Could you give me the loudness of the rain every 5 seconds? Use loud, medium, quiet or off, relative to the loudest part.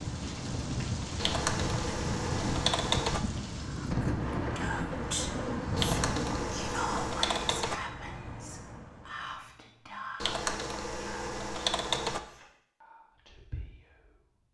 loud, loud, off.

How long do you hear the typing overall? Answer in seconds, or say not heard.
6 s.